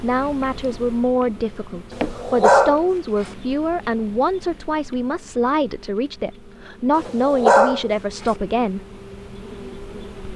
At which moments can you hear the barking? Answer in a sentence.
The barking can be heard from 1.9 to 3.3 s and from 7.0 to 8.3 s.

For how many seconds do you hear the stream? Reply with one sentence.
You can't hear the stream here.